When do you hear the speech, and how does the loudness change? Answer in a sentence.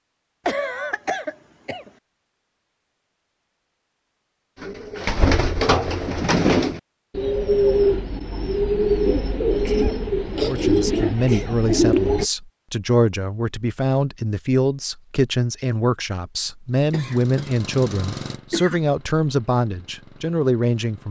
The speech can be heard from 10.4 to 21.0 s, at a steady volume.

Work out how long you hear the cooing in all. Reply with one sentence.
The cooing can be heard for 8 seconds in total.